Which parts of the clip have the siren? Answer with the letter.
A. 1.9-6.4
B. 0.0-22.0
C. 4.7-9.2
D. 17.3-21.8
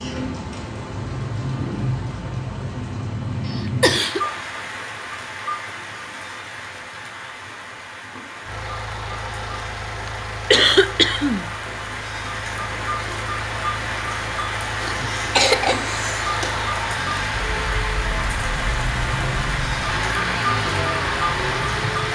D.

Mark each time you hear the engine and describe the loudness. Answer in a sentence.
The engine can be heard from 8.4 to 22.0 s, getting louder.